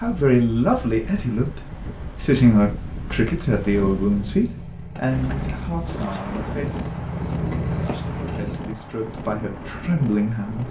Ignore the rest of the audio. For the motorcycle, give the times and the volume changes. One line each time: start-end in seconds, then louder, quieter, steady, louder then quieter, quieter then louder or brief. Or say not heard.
4.2-8.6 louder.